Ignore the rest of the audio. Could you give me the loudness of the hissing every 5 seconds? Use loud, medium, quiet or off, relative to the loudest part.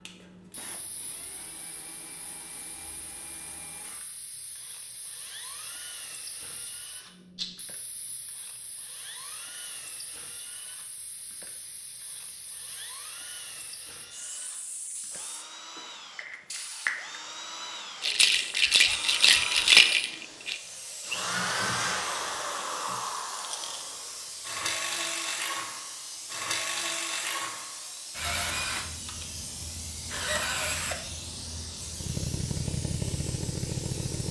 quiet, quiet, medium, loud, loud, loud, loud.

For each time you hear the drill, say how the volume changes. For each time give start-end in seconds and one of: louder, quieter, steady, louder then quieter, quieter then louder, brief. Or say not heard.
0.0-34.2 louder.